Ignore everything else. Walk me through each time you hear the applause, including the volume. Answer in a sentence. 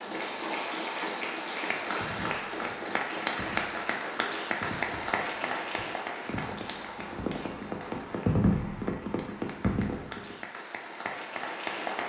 The applause can be heard from 0.0 to 12.0 s, getting quieter then louder.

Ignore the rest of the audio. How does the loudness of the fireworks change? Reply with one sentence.
The volume of the fireworks goes up.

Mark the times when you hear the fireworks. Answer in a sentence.
You can hear the fireworks from 1.9 to 10.3 s.